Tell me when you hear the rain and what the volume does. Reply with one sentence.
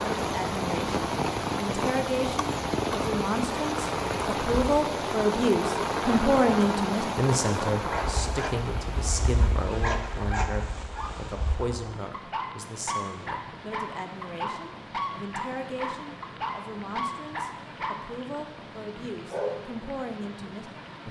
The rain can be heard from 0.0 to 21.0 s, getting quieter.